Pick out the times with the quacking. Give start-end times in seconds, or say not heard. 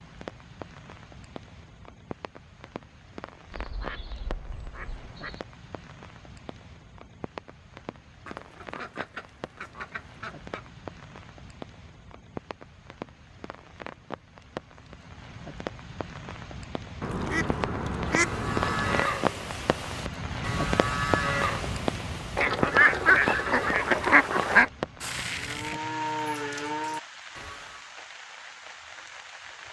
3.5-5.5, 8.2-10.7, 17.0-19.1, 22.4-24.7.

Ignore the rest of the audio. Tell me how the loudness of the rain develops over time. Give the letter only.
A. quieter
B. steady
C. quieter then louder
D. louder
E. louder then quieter
E.